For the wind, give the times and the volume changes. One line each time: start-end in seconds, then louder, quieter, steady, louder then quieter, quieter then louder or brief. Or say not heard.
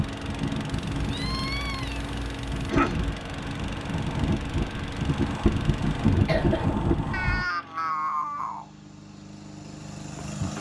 0.0-7.5 louder.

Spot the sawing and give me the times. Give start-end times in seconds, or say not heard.
not heard.